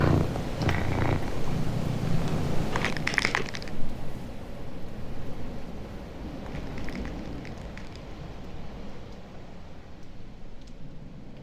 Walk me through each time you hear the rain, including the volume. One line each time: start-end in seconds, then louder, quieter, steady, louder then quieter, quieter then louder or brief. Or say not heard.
0.0-11.3 quieter.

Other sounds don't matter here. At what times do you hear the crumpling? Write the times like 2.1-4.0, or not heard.
2.7-3.7, 6.4-8.2.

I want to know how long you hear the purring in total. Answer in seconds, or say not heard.
3 s.